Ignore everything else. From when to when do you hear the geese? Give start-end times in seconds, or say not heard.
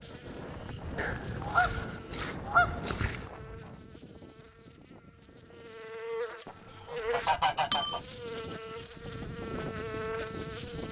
0.9-3.3, 6.5-8.0.